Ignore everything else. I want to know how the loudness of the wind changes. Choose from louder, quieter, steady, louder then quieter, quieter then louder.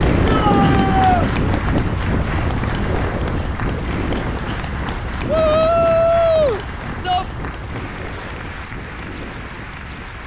quieter.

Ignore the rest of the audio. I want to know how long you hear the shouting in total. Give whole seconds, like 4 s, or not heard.
3 s.